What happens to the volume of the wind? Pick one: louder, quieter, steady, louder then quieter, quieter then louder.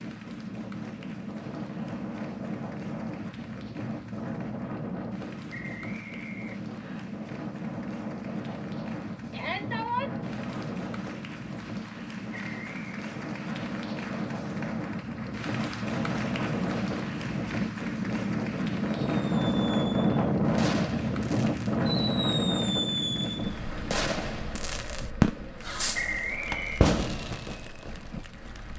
louder then quieter.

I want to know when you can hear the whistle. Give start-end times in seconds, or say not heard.
5.5-7.0, 12.3-12.8, 25.9-26.9.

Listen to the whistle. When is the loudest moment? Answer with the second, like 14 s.
26 s.